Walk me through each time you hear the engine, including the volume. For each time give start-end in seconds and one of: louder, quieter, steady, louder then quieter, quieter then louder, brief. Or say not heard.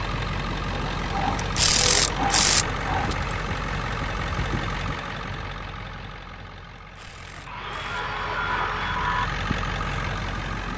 0.0-10.7 quieter then louder.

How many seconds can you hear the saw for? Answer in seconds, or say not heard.
4 s.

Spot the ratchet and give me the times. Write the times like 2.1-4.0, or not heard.
1.4-3.4, 6.8-8.1.